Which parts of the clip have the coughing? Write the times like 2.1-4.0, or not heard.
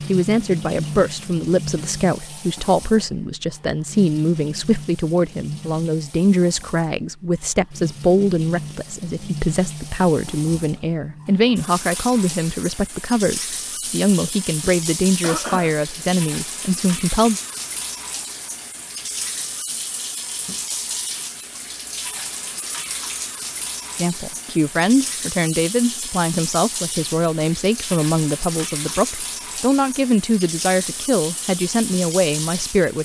15.2-15.8.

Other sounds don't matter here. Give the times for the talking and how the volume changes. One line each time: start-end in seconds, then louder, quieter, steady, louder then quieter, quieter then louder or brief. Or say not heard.
0.1-17.4 steady
23.9-33.0 steady.